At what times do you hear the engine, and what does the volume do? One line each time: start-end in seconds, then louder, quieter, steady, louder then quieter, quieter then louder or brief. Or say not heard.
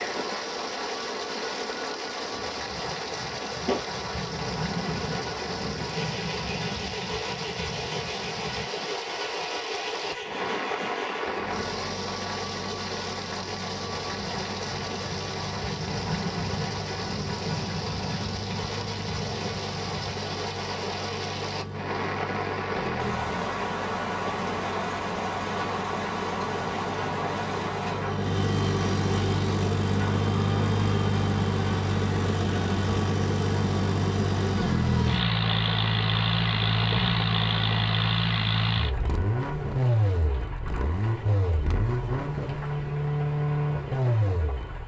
0.0-44.8 louder.